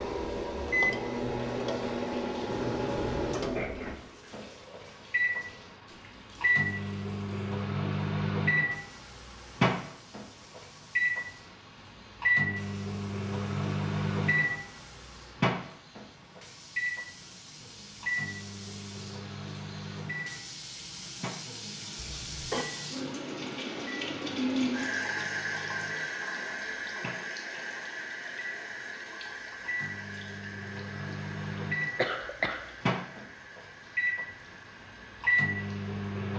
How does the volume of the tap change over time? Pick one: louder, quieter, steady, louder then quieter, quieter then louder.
louder then quieter.